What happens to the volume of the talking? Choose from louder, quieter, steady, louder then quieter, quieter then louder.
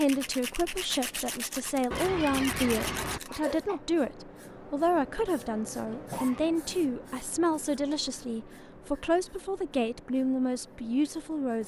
steady.